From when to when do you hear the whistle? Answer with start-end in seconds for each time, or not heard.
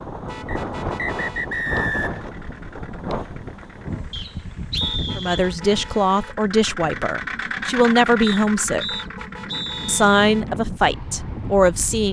0.5-2.3, 4.1-5.5, 8.2-10.1.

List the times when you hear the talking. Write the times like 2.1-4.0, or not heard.
5.2-8.9, 9.8-12.0.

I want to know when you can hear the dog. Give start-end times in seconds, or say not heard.
not heard.